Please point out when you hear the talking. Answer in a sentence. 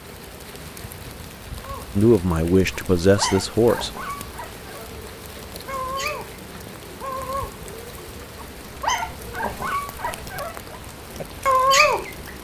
You can hear the talking from 1.9 to 3.9 s.